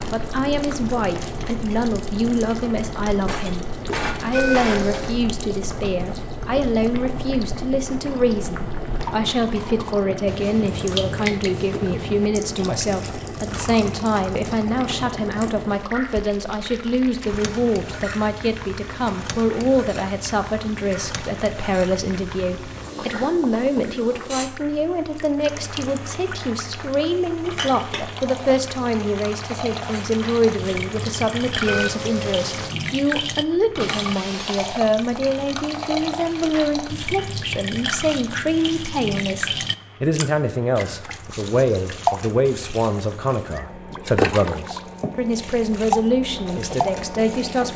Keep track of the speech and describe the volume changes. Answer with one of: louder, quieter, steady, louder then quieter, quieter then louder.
steady.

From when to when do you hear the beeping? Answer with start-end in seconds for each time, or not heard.
4.3-5.2, 31.6-32.8.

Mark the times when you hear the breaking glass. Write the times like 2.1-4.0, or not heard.
3.2-5.2, 33.8-34.9.